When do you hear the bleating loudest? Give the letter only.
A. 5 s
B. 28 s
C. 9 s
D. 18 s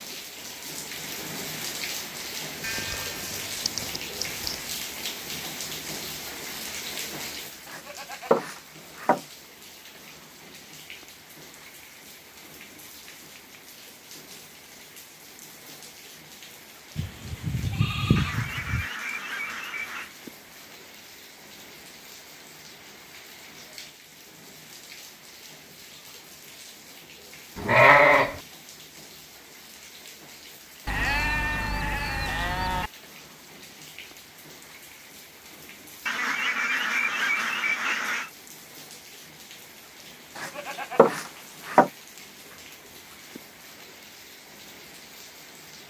B.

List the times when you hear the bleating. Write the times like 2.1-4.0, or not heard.
2.6-4.7, 7.7-9.2, 16.9-18.9, 27.6-28.4, 30.9-32.9, 40.4-41.9.